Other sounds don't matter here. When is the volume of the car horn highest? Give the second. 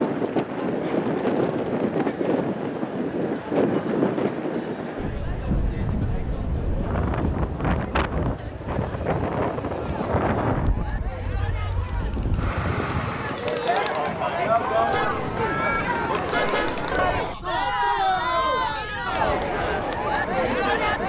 16 s.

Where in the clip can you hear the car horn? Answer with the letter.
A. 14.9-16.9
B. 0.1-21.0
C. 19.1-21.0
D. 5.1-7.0
A.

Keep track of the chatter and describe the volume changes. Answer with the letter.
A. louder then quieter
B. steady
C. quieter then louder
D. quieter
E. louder
E.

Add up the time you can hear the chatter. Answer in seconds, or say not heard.
21 s.